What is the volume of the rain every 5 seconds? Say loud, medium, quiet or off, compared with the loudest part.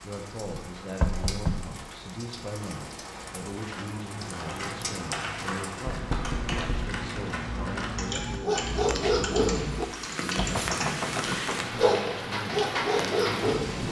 medium, medium, loud.